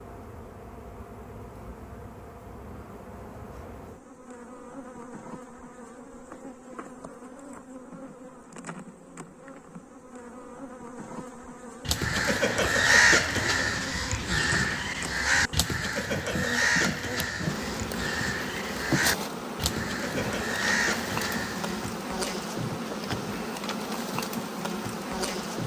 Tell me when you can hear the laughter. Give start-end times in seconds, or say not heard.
not heard.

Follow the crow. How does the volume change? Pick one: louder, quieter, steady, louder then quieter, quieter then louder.
quieter.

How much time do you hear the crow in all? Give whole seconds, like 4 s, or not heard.
10 s.